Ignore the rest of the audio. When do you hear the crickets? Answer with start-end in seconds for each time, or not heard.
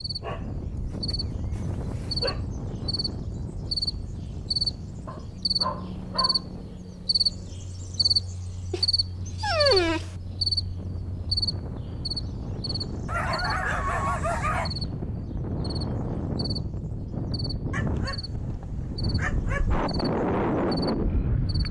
0.0-21.6.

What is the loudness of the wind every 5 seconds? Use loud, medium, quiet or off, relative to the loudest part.
medium, quiet, medium, medium, loud.